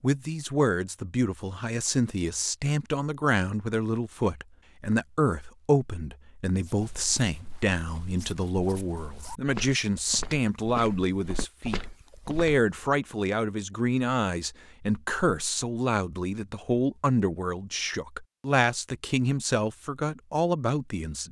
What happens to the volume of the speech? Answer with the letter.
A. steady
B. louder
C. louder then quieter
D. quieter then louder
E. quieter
A.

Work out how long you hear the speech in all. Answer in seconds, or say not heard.
21 s.